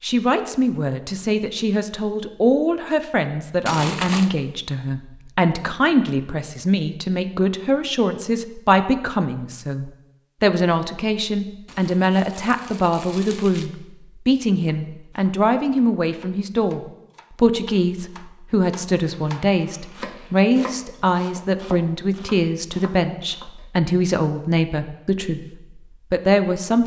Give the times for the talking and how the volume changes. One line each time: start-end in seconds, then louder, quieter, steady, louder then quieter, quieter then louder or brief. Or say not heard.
0.0-26.8 steady.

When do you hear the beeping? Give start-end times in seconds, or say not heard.
not heard.